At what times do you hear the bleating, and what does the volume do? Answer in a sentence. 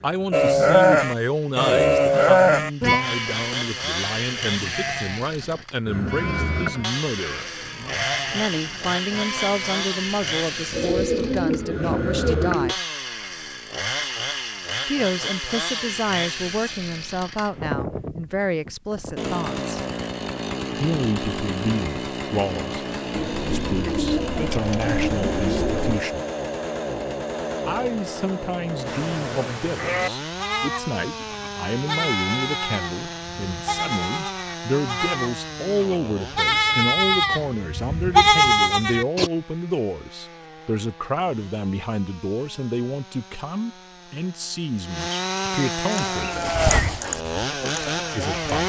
You can hear the bleating from 0.3 to 10.8 s, getting quieter; from 28.9 to 39.3 s, getting louder; and briefly from 45.9 to 48.6 s.